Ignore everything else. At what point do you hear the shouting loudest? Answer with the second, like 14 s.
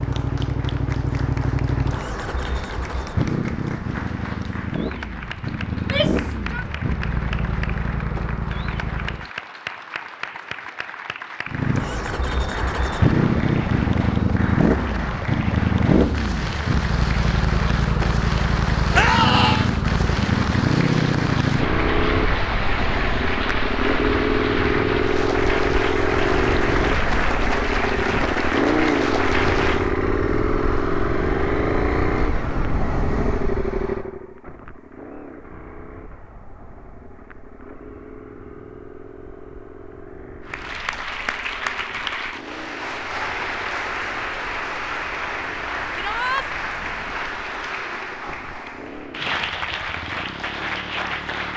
19 s.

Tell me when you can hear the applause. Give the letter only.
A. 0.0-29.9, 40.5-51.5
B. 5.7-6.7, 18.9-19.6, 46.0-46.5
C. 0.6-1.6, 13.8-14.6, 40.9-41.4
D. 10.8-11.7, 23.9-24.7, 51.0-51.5
A.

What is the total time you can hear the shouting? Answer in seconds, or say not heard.
2 s.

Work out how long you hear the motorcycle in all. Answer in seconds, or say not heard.
49 s.